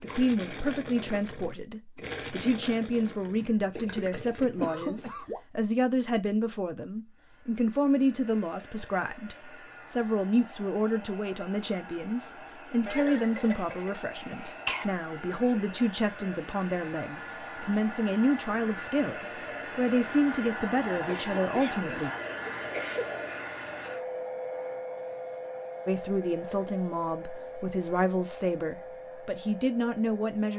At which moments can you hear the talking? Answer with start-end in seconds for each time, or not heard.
0.0-22.1, 25.9-30.5.